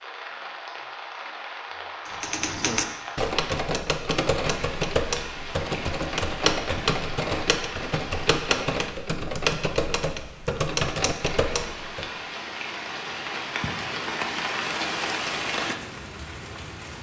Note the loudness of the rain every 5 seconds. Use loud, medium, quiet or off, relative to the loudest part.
medium, medium, loud, loud.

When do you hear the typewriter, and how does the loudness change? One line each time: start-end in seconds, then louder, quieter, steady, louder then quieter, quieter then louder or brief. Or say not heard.
2.0-12.2 steady.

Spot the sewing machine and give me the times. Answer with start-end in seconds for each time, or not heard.
not heard.